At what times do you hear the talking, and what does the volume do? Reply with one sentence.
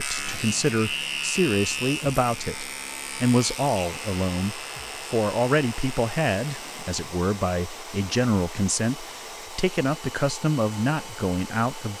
The talking can be heard from 0.0 to 11.9 s, at a steady volume.